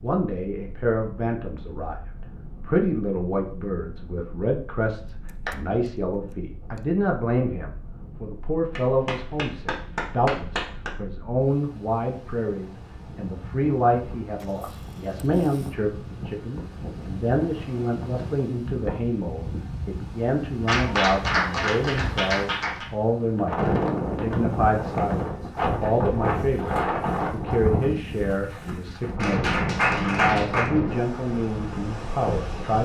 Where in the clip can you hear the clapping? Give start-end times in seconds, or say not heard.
8.8-10.9, 20.6-22.9, 29.1-30.7.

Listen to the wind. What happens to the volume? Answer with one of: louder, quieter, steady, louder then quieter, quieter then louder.
louder.